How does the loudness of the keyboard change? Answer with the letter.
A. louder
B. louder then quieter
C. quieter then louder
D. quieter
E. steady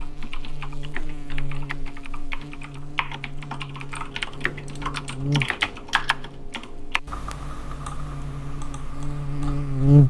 B.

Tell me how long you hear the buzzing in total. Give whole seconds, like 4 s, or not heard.
10 s.